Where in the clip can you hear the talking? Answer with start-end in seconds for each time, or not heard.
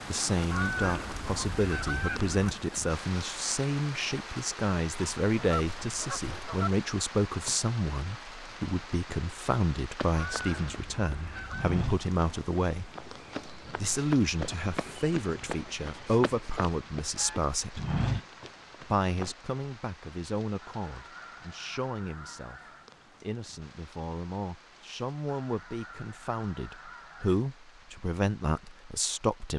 0.1-12.9, 13.8-17.8, 18.9-29.5.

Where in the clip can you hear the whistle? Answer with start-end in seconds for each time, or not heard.
not heard.